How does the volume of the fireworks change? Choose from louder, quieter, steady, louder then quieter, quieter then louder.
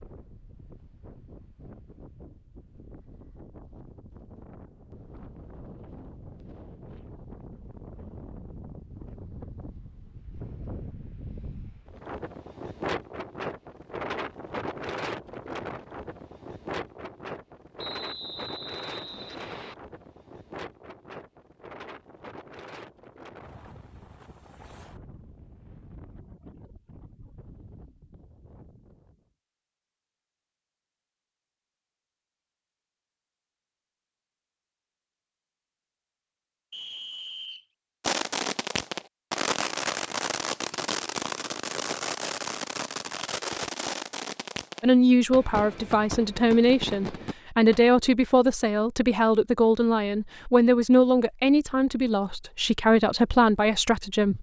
quieter.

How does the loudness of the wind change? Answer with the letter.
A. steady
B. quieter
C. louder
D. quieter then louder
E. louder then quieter
E.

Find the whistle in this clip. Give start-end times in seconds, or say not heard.
17.8-19.8, 36.7-37.6.